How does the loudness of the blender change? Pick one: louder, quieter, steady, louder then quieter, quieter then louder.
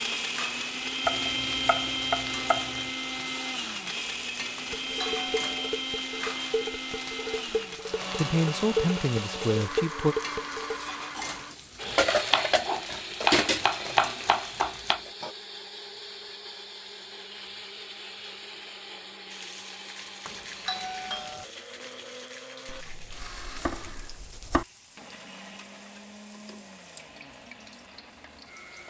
quieter.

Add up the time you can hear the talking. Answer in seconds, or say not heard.
2 s.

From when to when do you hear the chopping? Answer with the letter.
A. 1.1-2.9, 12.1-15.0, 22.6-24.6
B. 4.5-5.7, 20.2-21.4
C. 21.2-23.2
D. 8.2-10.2
A.